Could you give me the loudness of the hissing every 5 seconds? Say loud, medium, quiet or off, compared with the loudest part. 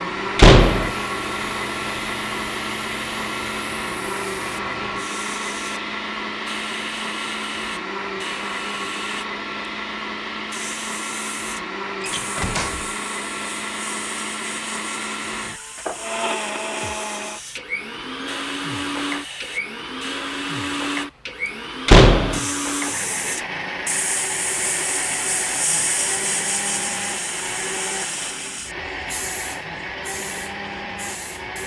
medium, medium, medium, medium, loud, loud, medium.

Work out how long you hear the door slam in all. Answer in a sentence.
You can hear the door slam for 2 seconds altogether.